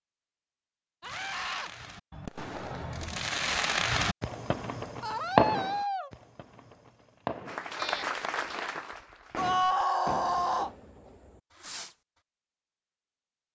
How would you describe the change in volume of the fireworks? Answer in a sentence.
The volume of the fireworks goes up, then down.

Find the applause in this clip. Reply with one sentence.
You can hear the applause from 7.5 to 9.6 s.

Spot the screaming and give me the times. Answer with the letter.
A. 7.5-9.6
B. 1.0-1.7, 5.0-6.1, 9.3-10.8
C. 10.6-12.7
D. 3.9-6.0
B.